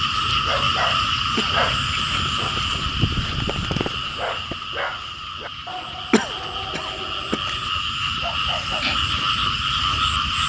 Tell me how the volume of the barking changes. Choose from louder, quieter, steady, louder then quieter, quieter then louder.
quieter.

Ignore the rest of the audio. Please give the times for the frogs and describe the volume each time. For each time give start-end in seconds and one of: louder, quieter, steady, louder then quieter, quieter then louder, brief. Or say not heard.
0.0-10.4 quieter then louder.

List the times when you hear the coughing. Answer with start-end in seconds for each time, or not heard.
1.4-2.6, 6.1-7.4.